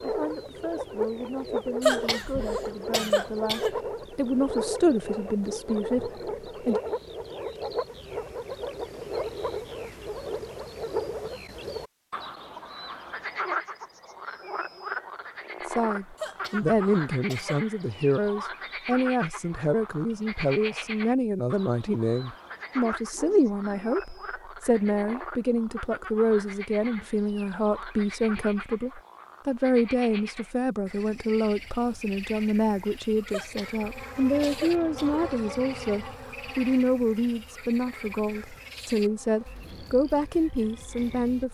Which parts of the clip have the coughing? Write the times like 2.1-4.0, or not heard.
1.8-3.8, 16.1-17.6, 33.3-35.2.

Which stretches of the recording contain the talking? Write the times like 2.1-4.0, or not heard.
0.0-6.8, 15.7-41.4.